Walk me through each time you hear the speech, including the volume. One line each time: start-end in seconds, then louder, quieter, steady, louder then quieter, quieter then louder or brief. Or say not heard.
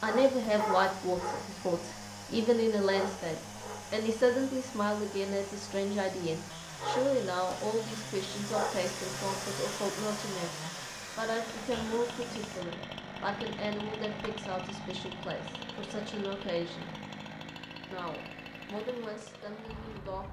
0.0-16.9 quieter
17.9-20.2 brief.